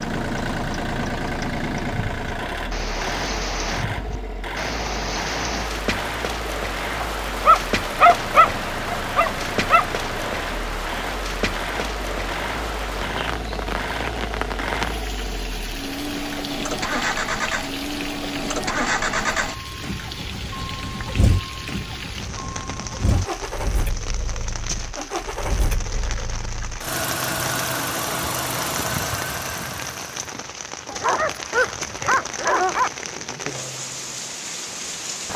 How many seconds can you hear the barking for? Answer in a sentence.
You can hear the barking for 5 seconds altogether.